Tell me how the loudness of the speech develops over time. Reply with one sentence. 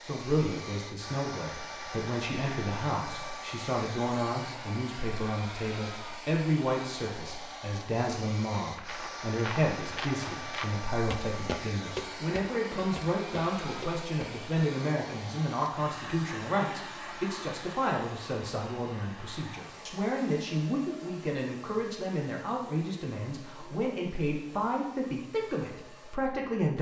The loudness of the speech stays about the same.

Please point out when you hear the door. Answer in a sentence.
The door can't be heard in this clip.